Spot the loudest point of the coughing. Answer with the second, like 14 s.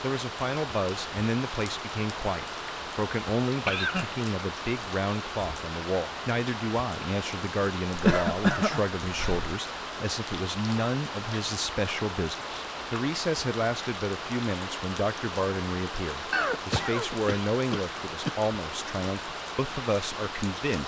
8 s.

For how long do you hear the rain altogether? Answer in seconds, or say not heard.
21 s.